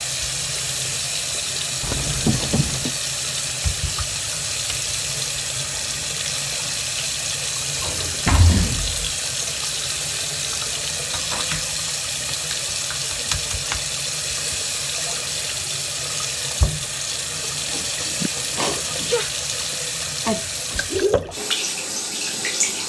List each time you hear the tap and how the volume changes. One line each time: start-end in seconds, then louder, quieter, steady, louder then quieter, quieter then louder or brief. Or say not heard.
0.0-22.8 steady.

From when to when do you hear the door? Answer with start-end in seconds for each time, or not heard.
7.8-9.1.